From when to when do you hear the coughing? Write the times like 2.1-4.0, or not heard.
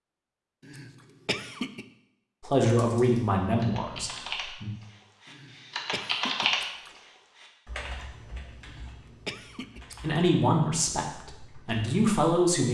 0.6-1.9, 5.2-6.5, 8.6-9.8.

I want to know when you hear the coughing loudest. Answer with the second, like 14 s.
1 s.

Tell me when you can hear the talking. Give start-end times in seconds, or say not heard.
2.4-4.7, 10.0-12.6.